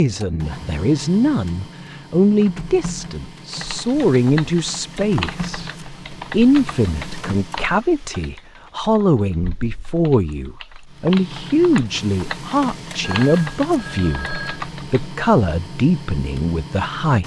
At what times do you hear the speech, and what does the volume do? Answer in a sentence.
You can hear the speech from 0.0 to 17.2 s, at a steady volume.